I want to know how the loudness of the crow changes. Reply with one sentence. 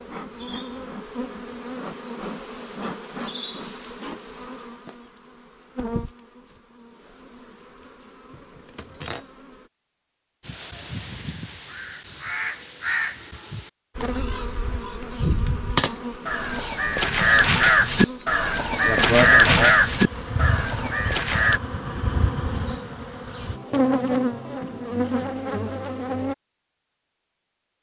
The volume of the crow goes up.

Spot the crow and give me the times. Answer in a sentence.
You can hear the crow from 10.4 to 21.6 s.